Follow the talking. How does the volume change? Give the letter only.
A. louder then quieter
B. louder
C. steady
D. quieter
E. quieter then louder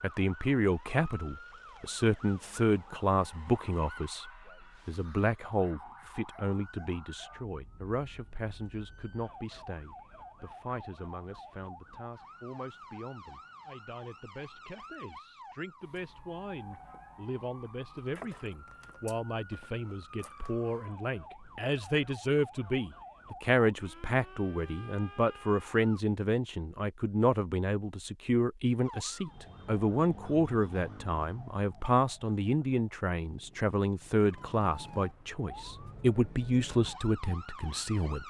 E.